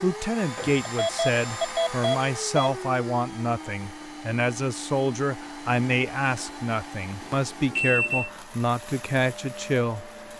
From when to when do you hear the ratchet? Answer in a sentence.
The ratchet can't be heard in this clip.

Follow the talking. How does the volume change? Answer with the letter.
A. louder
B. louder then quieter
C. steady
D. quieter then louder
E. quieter
C.